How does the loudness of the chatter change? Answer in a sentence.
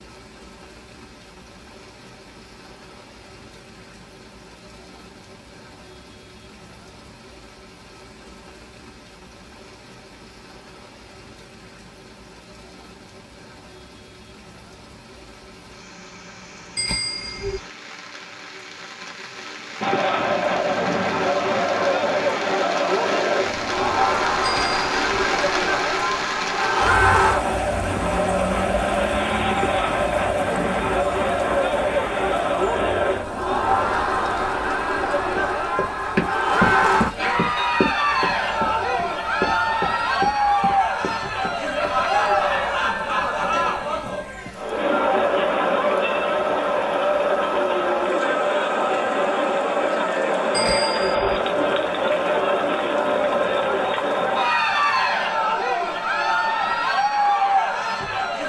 The volume of the chatter stays about the same.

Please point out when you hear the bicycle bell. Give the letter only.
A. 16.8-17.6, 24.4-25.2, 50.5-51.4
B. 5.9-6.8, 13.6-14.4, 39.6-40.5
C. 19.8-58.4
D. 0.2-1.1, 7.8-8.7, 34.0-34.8
A.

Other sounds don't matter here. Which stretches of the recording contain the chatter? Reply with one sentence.
You can hear the chatter from 19.8 to 58.4 s.